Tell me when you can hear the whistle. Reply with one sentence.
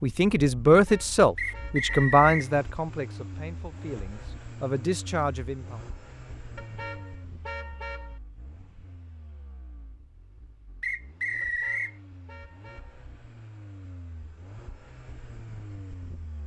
You can hear the whistle from 1.4 to 2.5 s and from 10.8 to 11.9 s.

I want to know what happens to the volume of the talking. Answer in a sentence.
The loudness of the talking goes down, then up.